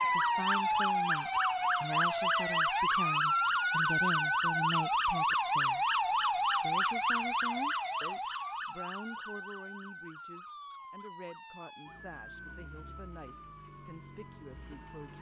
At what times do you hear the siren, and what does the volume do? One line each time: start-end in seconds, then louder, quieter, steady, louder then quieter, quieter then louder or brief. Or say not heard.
0.0-15.1 quieter.